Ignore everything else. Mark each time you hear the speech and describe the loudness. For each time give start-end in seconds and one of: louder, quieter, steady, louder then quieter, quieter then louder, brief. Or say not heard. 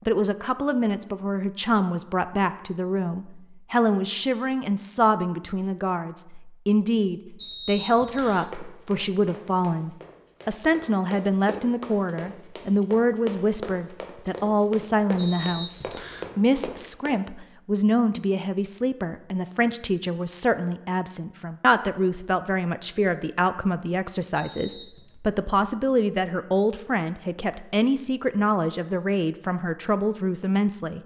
0.1-31.0 steady.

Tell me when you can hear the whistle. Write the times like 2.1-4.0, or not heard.
7.3-8.5, 15.2-16.3, 24.3-25.1.